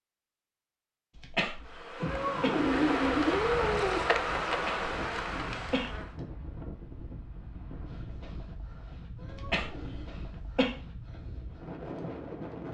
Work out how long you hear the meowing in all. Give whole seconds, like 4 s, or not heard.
3 s.